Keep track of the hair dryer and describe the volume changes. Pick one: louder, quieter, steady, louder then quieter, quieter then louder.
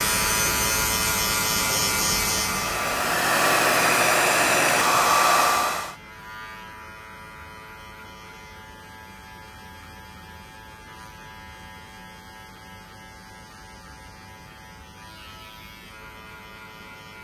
louder.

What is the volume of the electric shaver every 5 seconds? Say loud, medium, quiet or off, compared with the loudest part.
loud, quiet, quiet, quiet.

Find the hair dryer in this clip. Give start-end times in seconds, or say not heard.
0.0-6.0.